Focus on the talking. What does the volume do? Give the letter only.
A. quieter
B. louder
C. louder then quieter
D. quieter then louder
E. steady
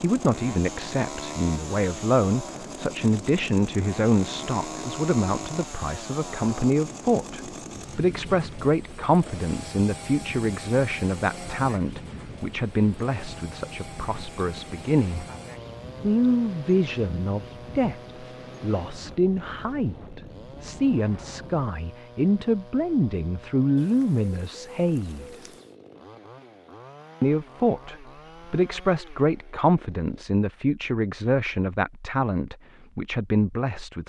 E.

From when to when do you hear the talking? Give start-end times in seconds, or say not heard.
0.0-15.2, 16.0-25.5, 27.2-34.0.